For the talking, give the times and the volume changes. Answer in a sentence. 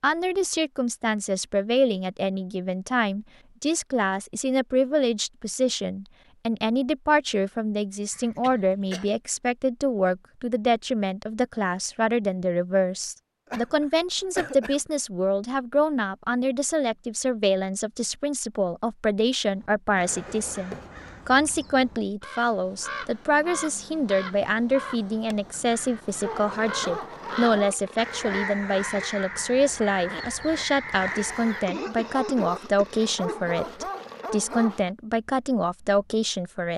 The talking can be heard from 0.0 to 36.7 s, at a steady volume.